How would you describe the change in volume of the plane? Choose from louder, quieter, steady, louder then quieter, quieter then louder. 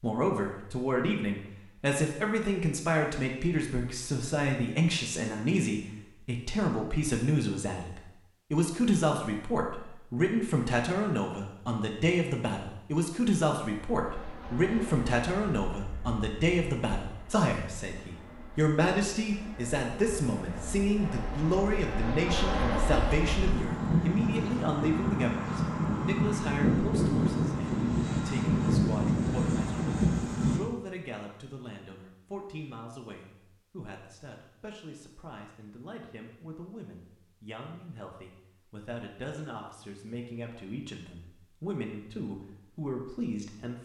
louder.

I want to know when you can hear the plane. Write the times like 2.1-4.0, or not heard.
13.8-30.6.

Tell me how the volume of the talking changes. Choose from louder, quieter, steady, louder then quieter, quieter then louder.
quieter.